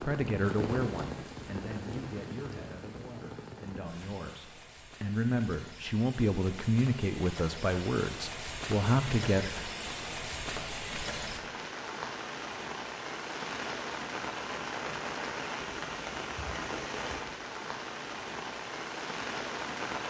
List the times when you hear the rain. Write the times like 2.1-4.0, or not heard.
0.0-20.0.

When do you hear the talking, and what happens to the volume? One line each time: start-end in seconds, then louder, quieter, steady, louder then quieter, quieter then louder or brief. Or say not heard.
0.0-9.5 quieter then louder.